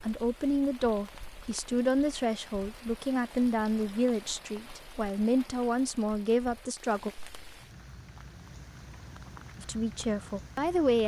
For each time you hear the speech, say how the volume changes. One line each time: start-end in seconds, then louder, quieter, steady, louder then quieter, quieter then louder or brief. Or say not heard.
0.0-7.1 steady
9.6-11.0 brief.